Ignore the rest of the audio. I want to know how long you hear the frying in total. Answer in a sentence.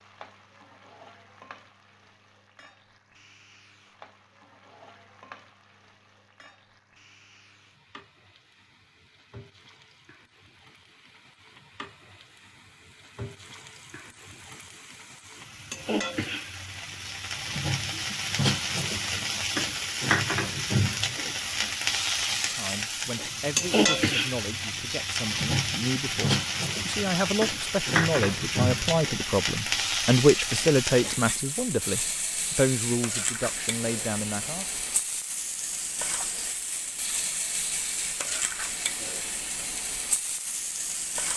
You can hear the frying for 41 seconds altogether.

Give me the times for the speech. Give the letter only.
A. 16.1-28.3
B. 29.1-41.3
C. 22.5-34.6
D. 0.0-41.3
C.